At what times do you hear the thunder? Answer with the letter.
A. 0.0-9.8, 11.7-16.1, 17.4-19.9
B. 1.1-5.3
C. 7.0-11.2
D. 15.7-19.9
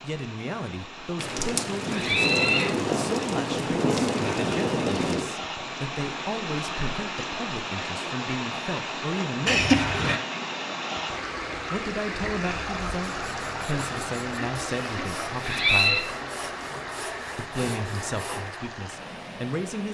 B.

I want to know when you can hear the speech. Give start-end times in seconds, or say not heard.
0.0-9.8, 11.7-16.1, 17.4-19.9.